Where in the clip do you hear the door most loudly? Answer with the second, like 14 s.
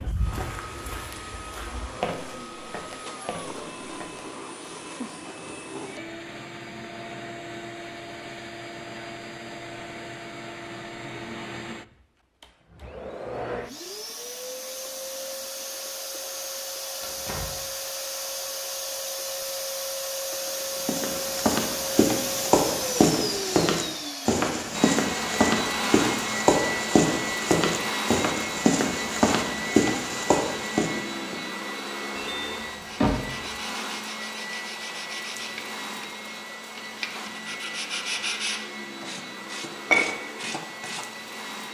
33 s.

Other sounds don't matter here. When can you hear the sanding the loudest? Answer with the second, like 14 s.
40 s.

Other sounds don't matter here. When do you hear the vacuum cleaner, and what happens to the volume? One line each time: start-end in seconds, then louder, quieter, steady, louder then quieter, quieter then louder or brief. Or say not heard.
0.0-41.6 louder then quieter.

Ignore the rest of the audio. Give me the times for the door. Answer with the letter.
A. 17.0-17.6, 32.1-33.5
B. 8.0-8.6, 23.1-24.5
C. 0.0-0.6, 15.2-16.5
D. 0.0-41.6
A.